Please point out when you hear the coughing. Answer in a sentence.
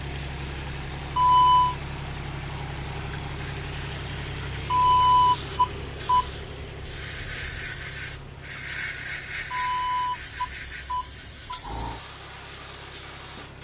You can't hear the coughing here.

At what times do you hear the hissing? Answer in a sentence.
The hissing can be heard from 0.0 to 13.5 s.